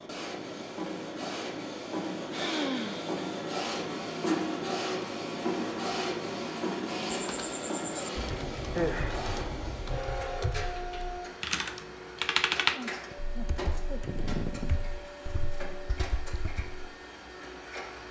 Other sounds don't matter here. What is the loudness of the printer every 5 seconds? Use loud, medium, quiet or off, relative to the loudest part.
loud, loud, medium, medium.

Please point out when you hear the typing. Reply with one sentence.
The typing can be heard from 7.3 to 16.9 s.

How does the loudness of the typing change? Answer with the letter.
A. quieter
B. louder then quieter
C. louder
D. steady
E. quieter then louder
B.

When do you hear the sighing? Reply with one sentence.
You can hear the sighing from 2.3 to 3.1 s, from 8.8 to 9.7 s and from 12.7 to 14.9 s.